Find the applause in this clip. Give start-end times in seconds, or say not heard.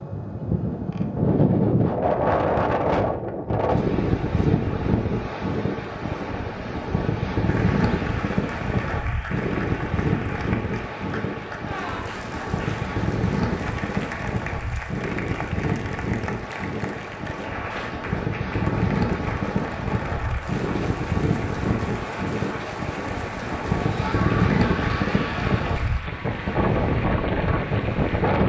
7.5-28.4.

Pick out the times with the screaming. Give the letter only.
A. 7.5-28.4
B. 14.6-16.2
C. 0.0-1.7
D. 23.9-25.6
D.